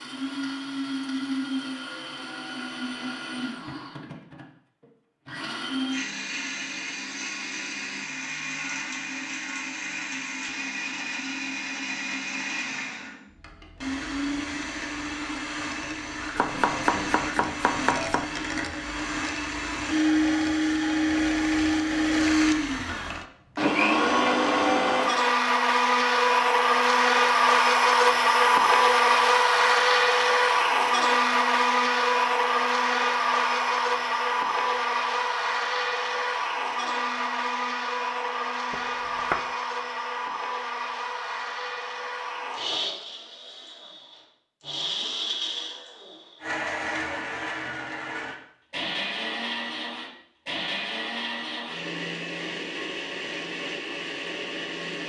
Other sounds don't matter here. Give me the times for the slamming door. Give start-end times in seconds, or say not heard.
not heard.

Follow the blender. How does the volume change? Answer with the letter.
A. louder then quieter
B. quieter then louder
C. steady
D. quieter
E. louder
A.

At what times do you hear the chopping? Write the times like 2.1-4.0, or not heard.
16.4-18.2, 38.7-39.5.